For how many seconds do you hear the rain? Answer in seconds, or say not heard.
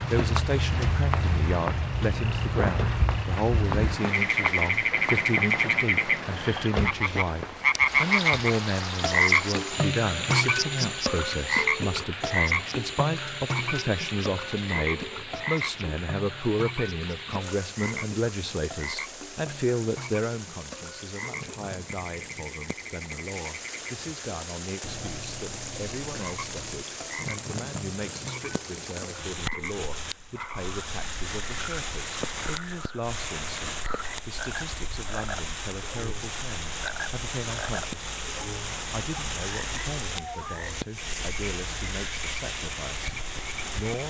44 s.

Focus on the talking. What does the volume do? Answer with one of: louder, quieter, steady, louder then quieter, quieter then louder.
quieter.